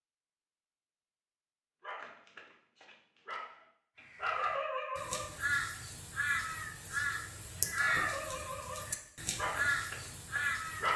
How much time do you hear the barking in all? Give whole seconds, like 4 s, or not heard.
7 s.